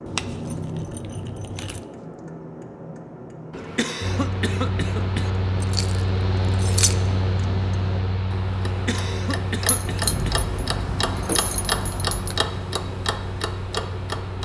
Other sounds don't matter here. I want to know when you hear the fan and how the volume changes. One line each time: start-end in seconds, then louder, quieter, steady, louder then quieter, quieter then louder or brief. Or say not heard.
4.0-14.4 quieter.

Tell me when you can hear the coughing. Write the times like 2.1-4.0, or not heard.
3.5-5.3, 8.7-10.4.